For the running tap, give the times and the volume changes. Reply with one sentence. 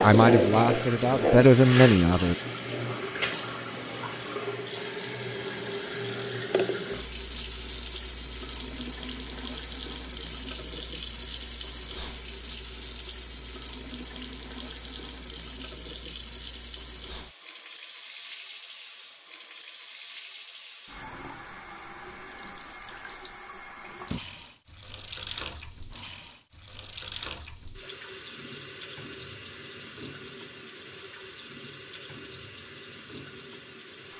You can hear the running tap from 0.0 to 34.1 s, getting quieter.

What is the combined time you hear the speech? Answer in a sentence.
You can hear the speech for 2 seconds altogether.